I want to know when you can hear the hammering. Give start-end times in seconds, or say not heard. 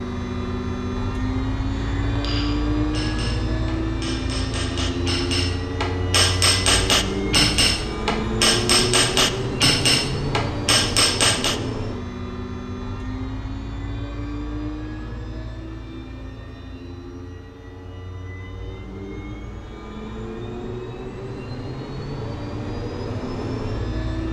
1.9-11.6.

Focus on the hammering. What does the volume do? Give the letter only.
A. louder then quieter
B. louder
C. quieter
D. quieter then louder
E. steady
B.